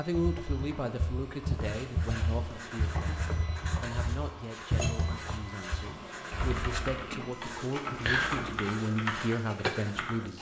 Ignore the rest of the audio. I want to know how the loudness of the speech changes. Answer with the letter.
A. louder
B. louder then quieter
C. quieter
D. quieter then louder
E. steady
D.